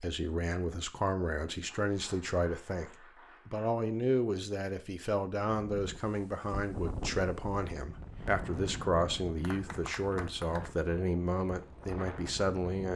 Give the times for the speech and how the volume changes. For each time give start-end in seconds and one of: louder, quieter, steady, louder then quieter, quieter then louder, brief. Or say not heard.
0.0-12.9 steady.